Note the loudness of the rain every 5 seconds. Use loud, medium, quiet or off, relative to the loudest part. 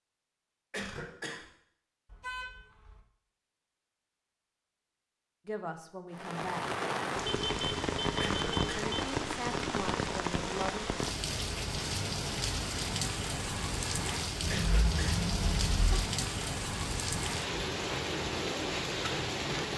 off, loud, loud, loud.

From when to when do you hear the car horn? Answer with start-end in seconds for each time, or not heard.
2.0-3.0, 7.2-9.0, 14.4-16.1.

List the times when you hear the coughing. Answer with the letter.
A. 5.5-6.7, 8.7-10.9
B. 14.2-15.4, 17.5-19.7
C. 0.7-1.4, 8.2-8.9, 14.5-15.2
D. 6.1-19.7
C.